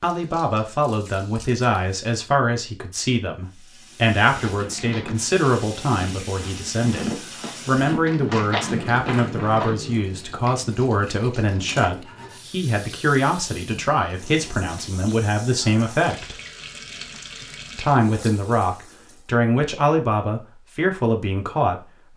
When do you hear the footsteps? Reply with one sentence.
The footsteps can be heard from 4.3 to 9.8 s.